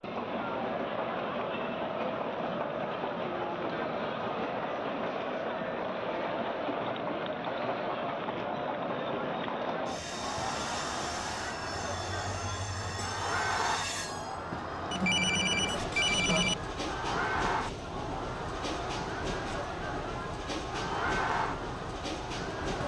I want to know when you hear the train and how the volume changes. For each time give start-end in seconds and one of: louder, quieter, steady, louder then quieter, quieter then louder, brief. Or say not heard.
0.0-22.8 steady.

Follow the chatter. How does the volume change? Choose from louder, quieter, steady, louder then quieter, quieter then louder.
steady.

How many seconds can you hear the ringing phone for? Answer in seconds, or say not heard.
2 s.